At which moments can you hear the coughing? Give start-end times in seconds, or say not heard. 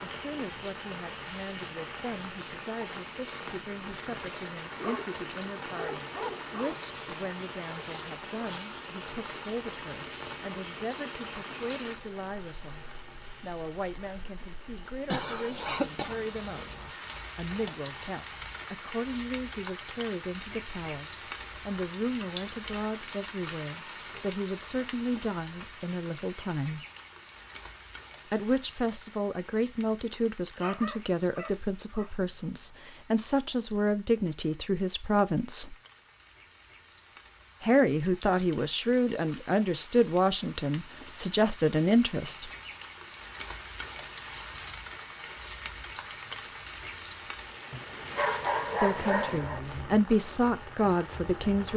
15.1-16.7.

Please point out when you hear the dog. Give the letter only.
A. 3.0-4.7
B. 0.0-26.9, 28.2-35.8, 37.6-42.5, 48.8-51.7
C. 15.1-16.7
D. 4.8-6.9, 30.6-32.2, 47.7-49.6
D.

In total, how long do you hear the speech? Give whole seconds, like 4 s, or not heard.
42 s.